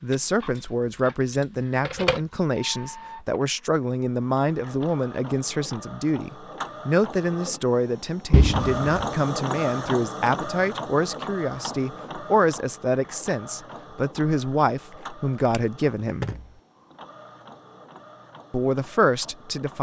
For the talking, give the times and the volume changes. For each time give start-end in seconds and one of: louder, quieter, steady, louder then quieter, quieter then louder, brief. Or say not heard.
0.0-16.3 steady
18.5-19.7 brief.